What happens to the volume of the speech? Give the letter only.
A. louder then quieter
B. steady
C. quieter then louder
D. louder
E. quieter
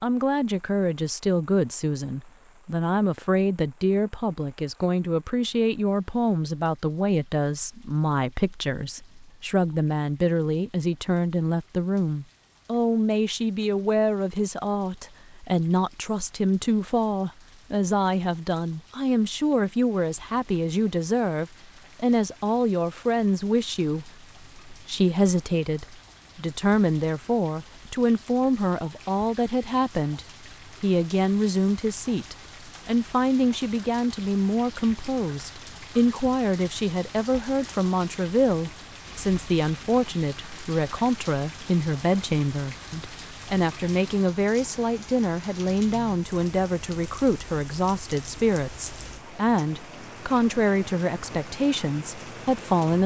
B.